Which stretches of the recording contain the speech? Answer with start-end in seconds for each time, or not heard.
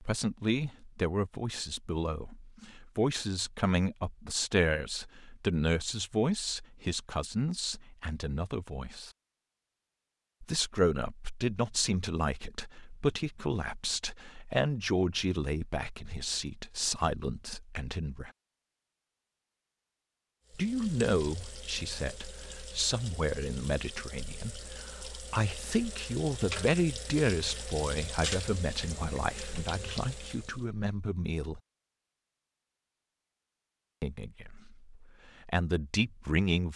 0.0-9.1, 10.4-18.3, 20.5-31.6, 34.0-36.7.